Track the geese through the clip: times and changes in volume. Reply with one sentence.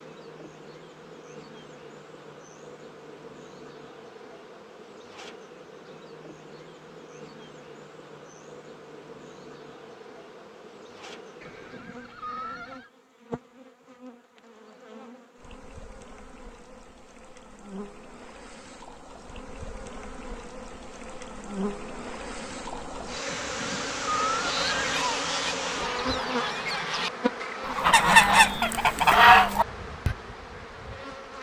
You can hear the geese from 24.3 to 30.1 s, getting louder.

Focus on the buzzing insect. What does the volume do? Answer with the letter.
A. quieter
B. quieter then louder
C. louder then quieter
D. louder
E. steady
D.